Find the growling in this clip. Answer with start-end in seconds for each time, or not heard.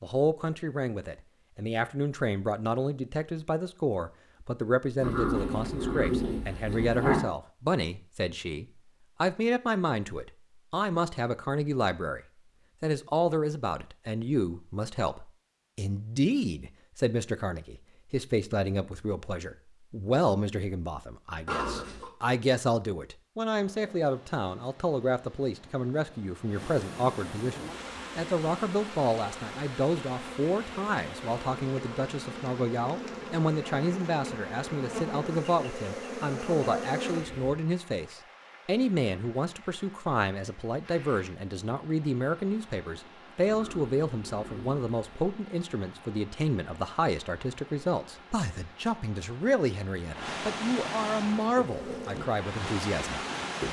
5.0-7.2, 21.4-22.1, 43.4-45.3.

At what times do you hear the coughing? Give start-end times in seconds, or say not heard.
not heard.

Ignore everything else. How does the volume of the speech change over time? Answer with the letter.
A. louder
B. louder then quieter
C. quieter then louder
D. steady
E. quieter
D.